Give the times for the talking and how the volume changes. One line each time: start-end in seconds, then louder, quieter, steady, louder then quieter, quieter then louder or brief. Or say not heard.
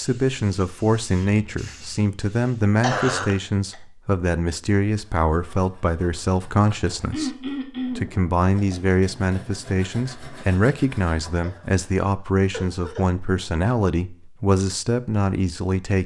0.0-16.0 steady.